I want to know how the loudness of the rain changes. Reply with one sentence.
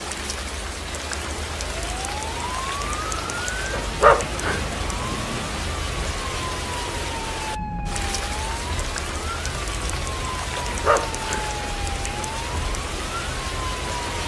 The loudness of the rain stays about the same.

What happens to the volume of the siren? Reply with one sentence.
The loudness of the siren stays about the same.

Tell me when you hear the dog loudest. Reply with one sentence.
The volume of the dog peaks at 4 seconds.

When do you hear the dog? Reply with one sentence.
You can hear the dog from 3.7 to 5.5 s and from 10.6 to 12.2 s.